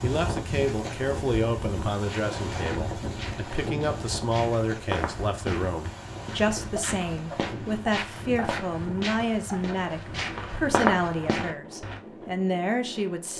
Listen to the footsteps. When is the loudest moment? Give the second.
11 s.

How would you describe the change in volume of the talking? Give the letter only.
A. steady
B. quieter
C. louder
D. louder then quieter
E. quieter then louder
A.